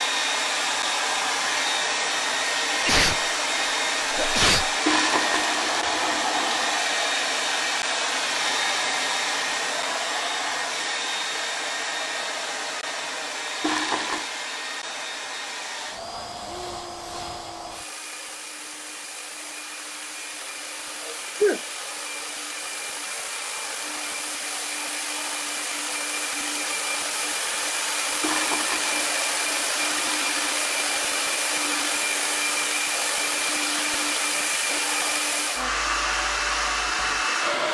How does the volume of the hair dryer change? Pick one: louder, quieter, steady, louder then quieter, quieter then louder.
quieter then louder.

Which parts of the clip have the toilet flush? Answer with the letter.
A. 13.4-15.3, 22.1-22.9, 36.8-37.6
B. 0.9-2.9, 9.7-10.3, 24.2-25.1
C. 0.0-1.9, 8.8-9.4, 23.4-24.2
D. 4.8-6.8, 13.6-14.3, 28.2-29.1
D.